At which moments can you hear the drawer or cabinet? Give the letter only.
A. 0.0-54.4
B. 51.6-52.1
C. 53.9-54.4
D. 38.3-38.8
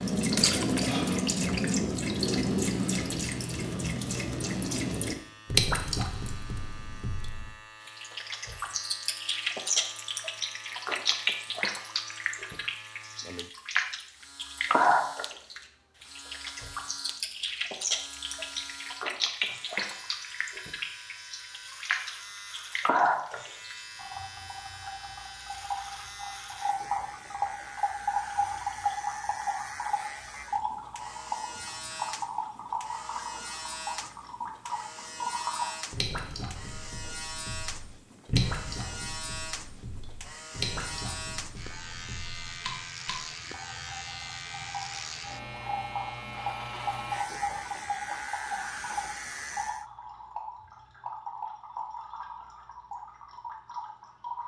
D.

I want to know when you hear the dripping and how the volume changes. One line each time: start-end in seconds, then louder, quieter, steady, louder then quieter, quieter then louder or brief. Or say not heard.
0.0-54.4 quieter.